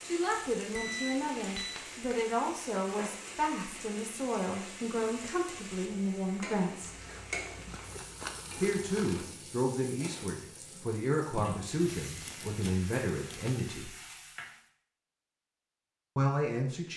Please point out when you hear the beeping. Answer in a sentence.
You can hear the beeping from 0.8 to 1.9 s.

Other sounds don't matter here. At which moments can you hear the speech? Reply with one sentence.
The speech can be heard from 0.0 to 7.0 s, from 8.6 to 13.9 s and from 16.1 to 16.9 s.